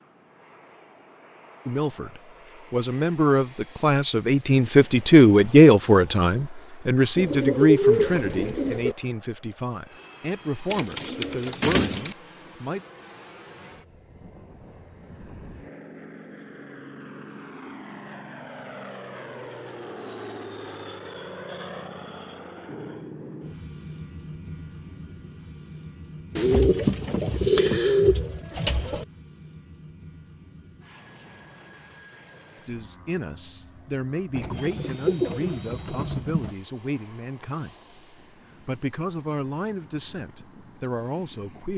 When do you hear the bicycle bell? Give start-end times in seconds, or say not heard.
not heard.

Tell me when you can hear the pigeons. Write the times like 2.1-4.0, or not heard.
7.2-8.9, 10.7-12.2, 26.4-29.1, 34.4-36.5.